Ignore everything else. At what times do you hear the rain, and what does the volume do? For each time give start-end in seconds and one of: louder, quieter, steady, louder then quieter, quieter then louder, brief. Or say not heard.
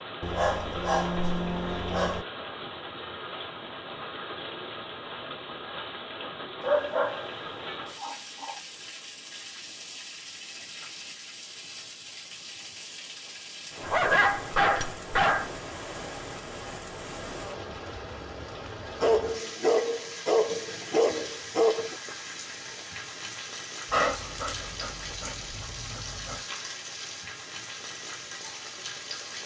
0.0-29.4 steady.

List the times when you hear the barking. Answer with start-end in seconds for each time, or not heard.
0.2-2.2, 6.6-7.3, 8.0-8.6, 13.8-15.6, 19.0-21.9, 23.9-26.4.